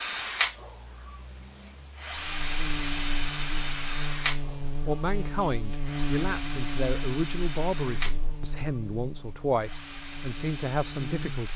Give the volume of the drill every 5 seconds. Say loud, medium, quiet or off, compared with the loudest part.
loud, medium, medium.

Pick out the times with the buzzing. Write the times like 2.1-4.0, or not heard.
2.1-11.4.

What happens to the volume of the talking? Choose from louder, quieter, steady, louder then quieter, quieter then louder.
steady.